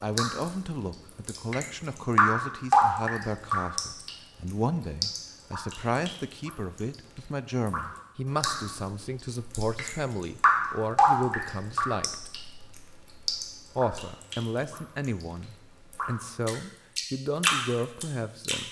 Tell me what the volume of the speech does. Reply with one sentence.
The volume of the speech stays about the same.